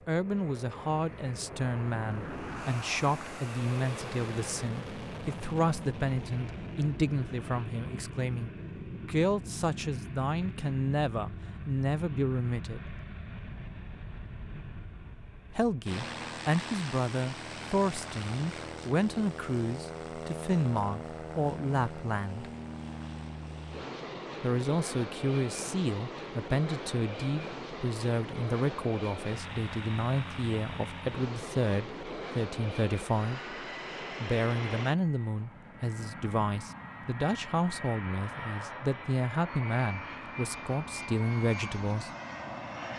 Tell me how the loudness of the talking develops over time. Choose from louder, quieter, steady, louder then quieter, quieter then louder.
steady.